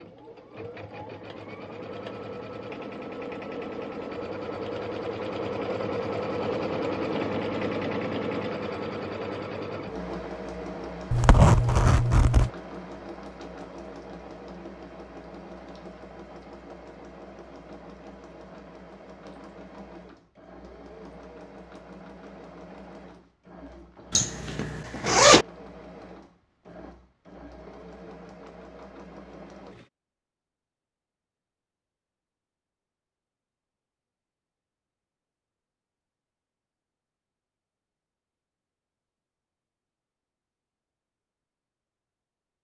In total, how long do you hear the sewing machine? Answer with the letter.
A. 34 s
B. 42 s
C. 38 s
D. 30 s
D.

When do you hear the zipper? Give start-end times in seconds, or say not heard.
11.1-12.5, 24.1-25.4.